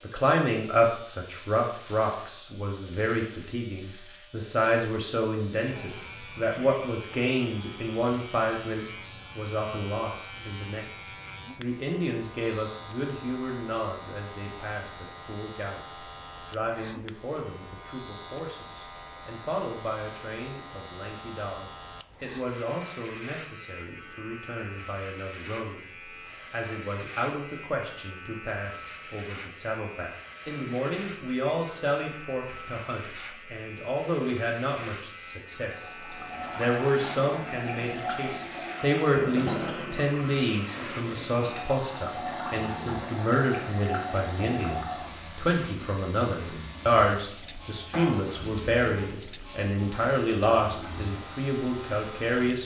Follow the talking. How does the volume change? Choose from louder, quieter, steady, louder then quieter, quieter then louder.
quieter then louder.